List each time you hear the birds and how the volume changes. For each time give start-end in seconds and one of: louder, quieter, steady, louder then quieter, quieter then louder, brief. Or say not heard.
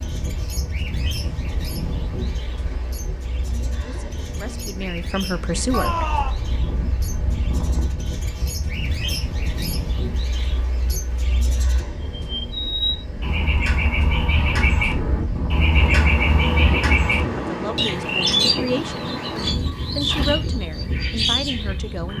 0.0-22.1 louder.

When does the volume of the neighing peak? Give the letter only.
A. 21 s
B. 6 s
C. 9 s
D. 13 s
B.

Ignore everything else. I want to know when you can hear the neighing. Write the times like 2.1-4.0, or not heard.
5.7-6.3, 19.6-20.4.